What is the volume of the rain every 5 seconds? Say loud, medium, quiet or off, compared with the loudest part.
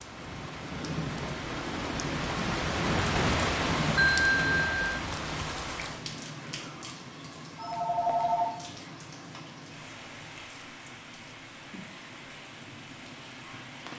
loud, medium, quiet.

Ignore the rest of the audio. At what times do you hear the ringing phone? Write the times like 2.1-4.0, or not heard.
4.0-4.8, 7.5-8.5.